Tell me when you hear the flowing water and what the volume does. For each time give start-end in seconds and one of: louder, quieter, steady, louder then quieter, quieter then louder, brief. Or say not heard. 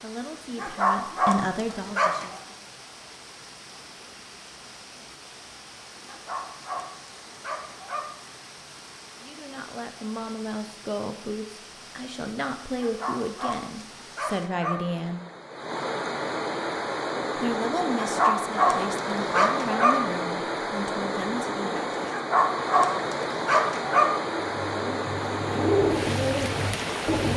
0.0-27.3 louder.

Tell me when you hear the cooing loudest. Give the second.
26 s.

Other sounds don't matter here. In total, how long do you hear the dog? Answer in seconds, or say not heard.
10 s.